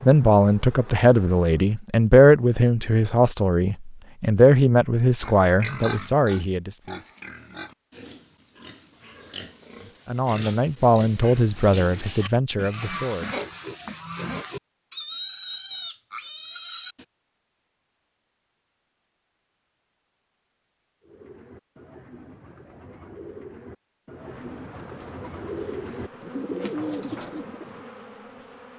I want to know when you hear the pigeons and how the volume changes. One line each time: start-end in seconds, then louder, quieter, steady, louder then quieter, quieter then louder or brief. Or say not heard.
21.0-27.9 louder.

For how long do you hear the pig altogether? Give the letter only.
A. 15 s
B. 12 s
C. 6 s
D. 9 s
B.